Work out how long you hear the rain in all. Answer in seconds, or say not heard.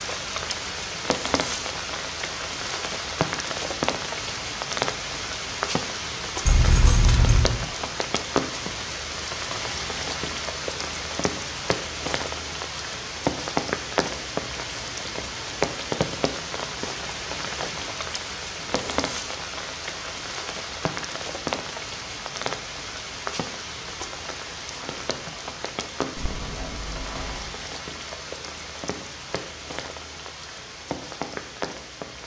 32 s.